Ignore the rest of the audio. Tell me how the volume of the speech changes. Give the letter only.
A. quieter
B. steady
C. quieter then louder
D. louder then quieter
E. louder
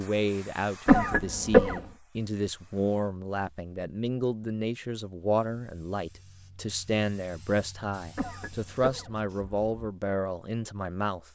B.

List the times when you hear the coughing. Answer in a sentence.
The coughing can be heard from 0.8 to 1.8 s and from 8.2 to 9.7 s.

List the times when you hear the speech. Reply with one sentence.
You can hear the speech from 0.0 to 11.2 s.